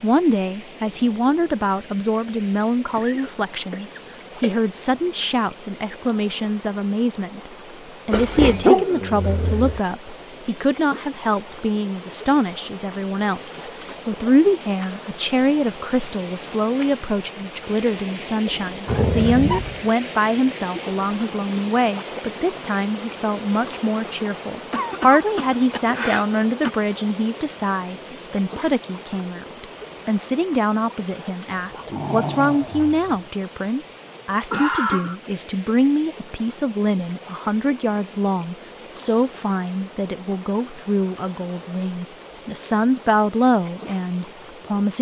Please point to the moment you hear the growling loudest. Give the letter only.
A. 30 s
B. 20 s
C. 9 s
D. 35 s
C.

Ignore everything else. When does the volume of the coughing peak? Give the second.
35 s.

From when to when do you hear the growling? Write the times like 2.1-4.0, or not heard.
8.1-9.8, 18.9-19.9, 31.5-33.2.